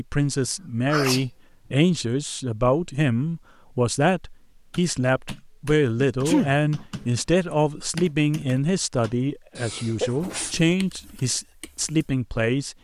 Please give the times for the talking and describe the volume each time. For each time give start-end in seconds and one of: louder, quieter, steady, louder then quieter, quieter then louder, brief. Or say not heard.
0.0-12.7 steady.